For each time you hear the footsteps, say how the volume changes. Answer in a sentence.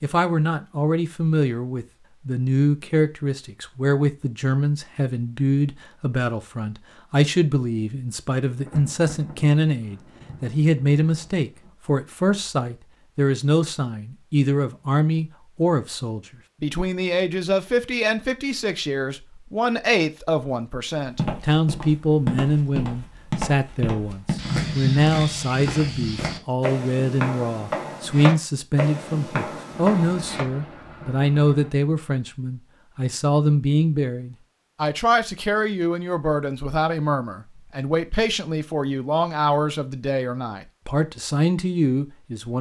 The footsteps can be heard from 21.1 to 30.4 s, at a steady volume.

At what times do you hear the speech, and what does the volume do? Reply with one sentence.
You can hear the speech from 0.0 to 42.5 s, at a steady volume.